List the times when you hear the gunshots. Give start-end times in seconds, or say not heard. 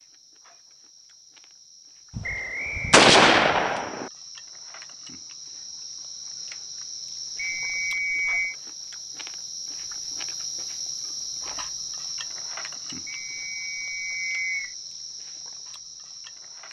2.1-4.1.